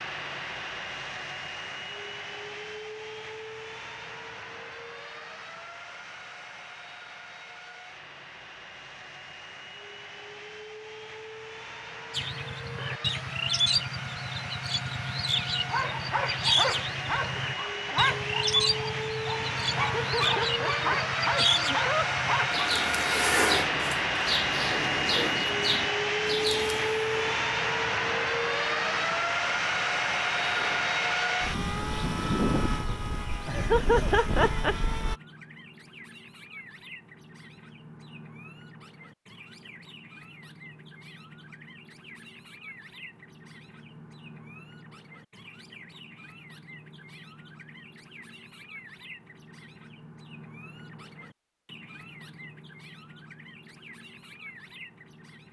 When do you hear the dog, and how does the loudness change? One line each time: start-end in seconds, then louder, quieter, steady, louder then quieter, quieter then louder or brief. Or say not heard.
15.5-22.6 quieter then louder.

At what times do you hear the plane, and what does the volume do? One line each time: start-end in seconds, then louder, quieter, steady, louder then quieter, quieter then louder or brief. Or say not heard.
0.0-35.1 louder.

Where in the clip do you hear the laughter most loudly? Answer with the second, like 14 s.
34 s.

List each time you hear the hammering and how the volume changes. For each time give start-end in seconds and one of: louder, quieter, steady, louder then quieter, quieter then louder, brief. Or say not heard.
not heard.